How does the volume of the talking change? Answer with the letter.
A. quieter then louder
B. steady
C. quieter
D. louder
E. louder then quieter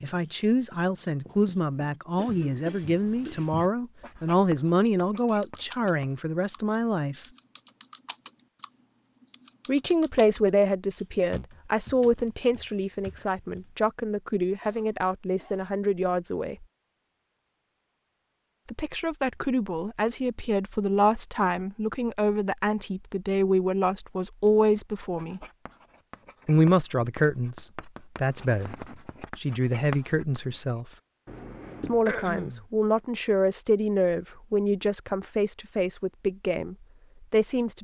B.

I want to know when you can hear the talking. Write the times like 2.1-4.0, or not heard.
0.0-7.2, 9.7-16.6, 18.7-25.4, 26.4-30.9, 31.8-37.7.